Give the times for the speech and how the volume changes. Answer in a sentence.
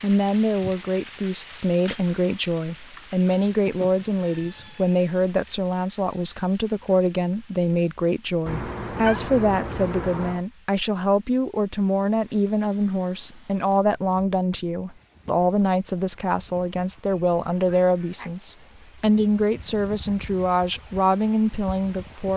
You can hear the speech from 0.0 to 22.3 s, at a steady volume.